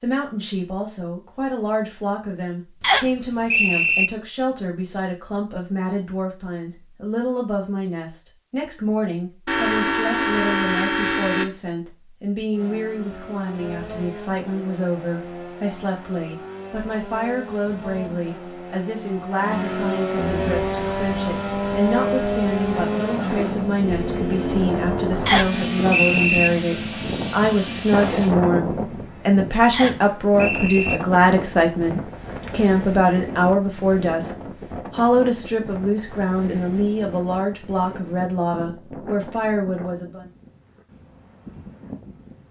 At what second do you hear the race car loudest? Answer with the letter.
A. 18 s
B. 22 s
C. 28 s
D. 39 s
B.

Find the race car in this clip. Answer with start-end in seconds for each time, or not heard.
12.5-28.4.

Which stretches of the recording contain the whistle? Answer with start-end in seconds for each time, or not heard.
2.8-4.1, 25.2-26.5, 29.7-31.0.